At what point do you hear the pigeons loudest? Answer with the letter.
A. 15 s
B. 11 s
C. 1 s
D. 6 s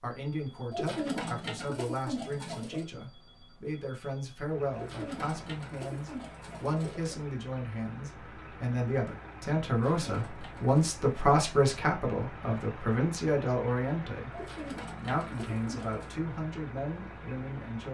C.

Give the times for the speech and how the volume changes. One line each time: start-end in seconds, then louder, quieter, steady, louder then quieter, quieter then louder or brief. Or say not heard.
0.0-17.8 louder then quieter.